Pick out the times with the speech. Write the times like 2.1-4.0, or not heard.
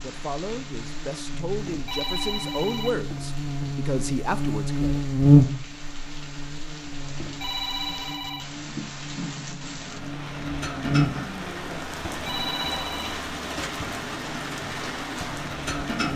0.0-5.0.